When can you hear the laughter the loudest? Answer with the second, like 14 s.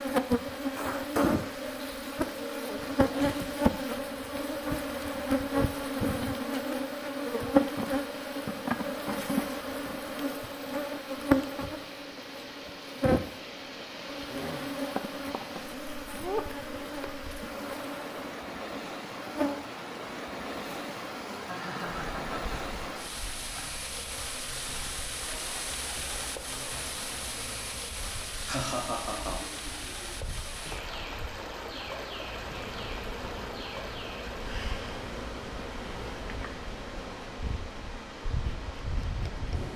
29 s.